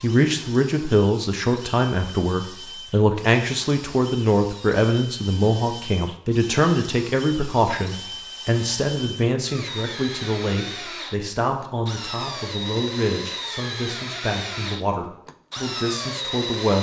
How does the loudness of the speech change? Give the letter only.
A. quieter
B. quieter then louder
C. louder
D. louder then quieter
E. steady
A.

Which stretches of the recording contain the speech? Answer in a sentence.
You can hear the speech from 0.0 to 16.7 s.